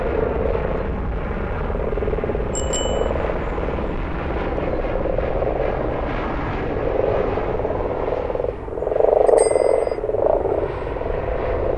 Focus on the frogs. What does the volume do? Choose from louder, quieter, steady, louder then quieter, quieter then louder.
louder.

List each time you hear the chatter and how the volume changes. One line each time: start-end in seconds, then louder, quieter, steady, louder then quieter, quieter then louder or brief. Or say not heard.
not heard.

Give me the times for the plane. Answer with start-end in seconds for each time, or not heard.
0.0-11.7.